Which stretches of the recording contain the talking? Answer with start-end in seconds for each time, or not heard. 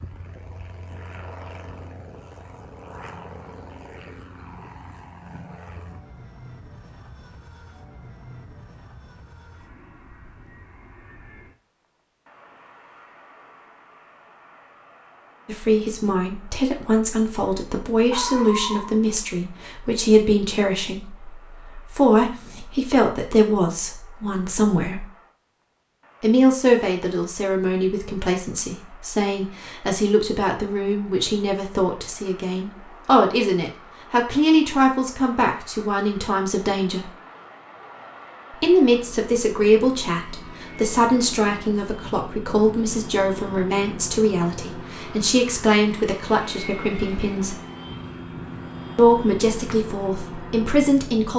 15.4-25.1, 26.2-37.1, 38.5-47.5, 49.0-51.3.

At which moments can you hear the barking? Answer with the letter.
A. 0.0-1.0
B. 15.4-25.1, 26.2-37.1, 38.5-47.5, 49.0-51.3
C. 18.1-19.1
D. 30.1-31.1
C.